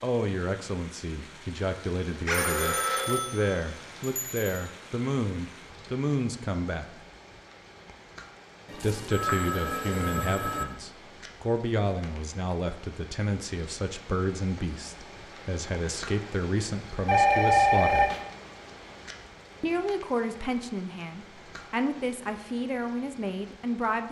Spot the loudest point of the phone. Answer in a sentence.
The loudest moment of the phone is at 18 seconds.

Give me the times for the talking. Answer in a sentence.
You can hear the talking from 0.0 to 7.0 s, from 8.7 to 18.1 s and from 19.6 to 24.0 s.